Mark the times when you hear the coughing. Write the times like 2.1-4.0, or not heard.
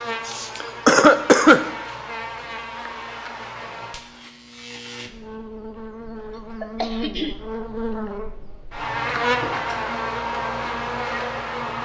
0.2-1.6, 6.6-7.3.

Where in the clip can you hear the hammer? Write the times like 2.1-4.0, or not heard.
not heard.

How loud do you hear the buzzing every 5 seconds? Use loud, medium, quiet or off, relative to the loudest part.
medium, loud, loud.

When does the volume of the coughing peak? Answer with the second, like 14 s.
1 s.